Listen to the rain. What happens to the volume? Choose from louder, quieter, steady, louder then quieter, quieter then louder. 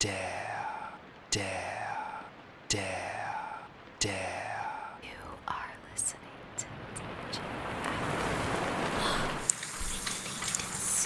louder.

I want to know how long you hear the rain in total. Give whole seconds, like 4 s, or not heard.
11 s.